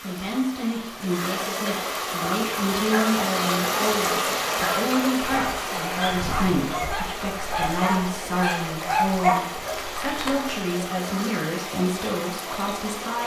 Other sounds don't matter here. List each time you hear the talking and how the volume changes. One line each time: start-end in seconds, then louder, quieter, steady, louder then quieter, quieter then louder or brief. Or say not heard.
0.0-13.2 steady.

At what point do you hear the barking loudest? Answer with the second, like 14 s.
9 s.